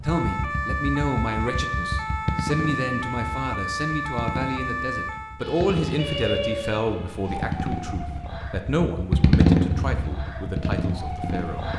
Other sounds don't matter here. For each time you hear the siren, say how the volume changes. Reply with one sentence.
You can hear the siren from 0.0 to 11.7 s, getting quieter.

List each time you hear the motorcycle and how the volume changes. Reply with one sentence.
You can hear the motorcycle from 0.0 to 11.7 s, getting louder.